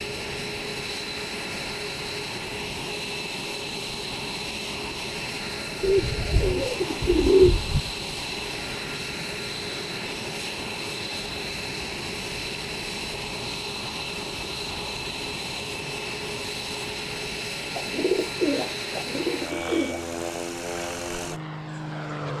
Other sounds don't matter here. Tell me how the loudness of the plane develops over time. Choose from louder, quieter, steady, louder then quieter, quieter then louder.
steady.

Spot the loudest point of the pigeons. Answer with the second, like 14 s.
7 s.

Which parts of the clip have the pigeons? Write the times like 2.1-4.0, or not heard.
5.8-7.9, 17.8-20.1.